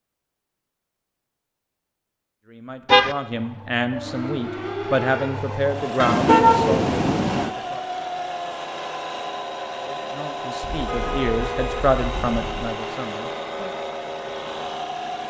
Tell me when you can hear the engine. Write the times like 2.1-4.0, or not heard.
3.3-15.2.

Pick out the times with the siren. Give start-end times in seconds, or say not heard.
3.9-5.6.